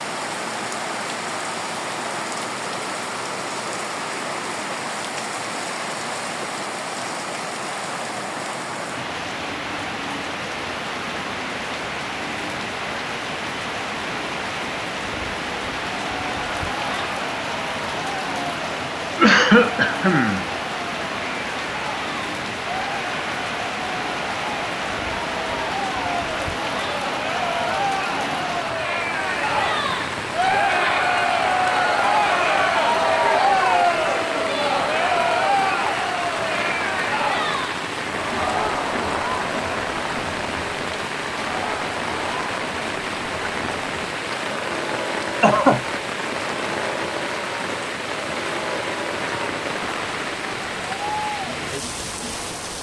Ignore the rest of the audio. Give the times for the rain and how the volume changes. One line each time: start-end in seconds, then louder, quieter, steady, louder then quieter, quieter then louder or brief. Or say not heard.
0.0-52.7 steady.